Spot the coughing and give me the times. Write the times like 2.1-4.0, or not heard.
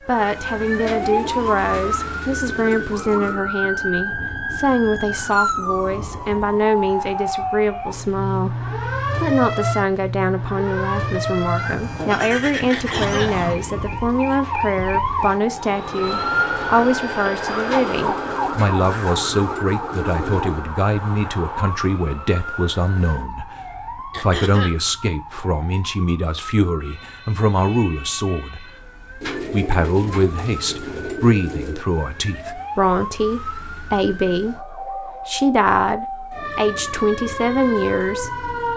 12.7-13.4, 24.1-24.8.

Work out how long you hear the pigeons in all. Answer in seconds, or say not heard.
8 s.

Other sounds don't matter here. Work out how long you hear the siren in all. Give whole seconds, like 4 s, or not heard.
39 s.